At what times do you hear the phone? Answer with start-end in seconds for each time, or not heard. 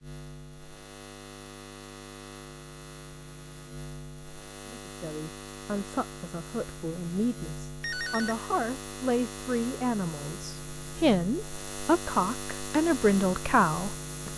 7.8-8.5.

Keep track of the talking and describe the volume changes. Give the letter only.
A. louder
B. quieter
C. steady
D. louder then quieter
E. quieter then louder
A.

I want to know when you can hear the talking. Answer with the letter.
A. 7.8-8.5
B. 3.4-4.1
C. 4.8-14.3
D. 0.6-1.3
C.